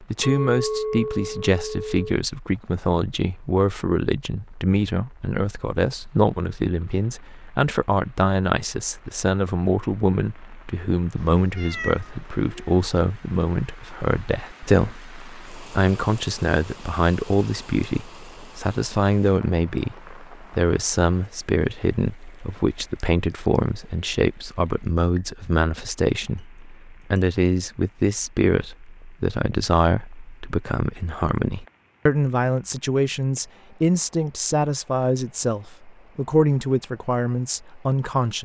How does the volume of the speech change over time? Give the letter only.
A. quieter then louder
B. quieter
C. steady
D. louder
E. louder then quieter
C.